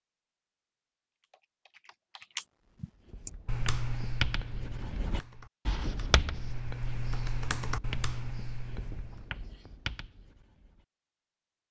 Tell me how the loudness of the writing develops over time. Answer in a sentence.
The loudness of the writing goes down.